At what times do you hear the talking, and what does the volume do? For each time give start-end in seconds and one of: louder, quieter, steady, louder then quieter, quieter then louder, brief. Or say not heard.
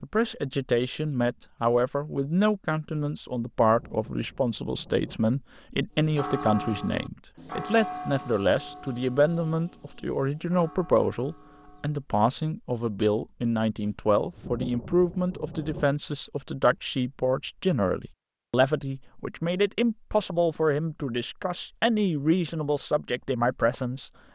0.0-24.1 steady.